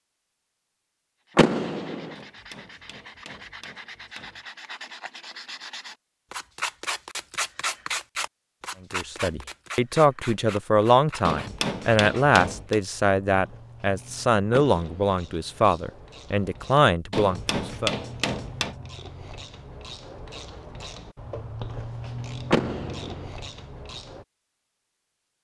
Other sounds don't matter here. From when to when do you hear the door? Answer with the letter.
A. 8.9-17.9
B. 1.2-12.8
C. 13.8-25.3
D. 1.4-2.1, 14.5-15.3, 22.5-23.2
D.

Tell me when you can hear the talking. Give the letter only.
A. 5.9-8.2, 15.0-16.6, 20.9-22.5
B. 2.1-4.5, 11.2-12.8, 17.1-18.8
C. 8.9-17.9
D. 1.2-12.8
C.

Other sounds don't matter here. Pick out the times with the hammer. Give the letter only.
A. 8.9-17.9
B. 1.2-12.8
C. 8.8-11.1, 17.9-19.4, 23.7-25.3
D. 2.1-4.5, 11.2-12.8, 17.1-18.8
D.